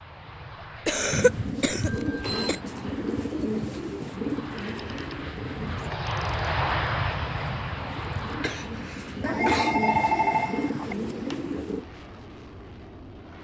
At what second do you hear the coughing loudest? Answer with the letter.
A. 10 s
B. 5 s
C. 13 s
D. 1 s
D.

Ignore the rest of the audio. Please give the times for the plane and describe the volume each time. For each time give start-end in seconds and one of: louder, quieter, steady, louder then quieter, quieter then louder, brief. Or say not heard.
0.0-13.3 louder then quieter.